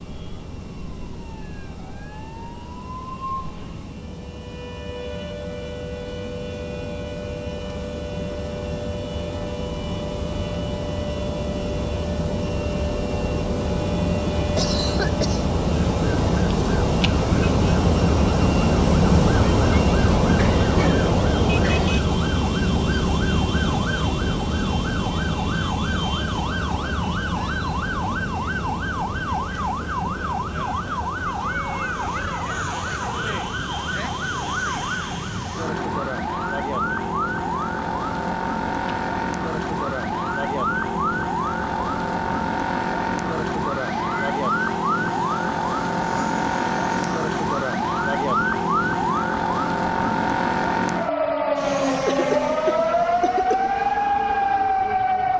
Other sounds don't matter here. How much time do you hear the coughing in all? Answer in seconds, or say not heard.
4 s.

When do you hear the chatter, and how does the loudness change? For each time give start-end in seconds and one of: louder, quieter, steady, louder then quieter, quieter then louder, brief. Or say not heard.
not heard.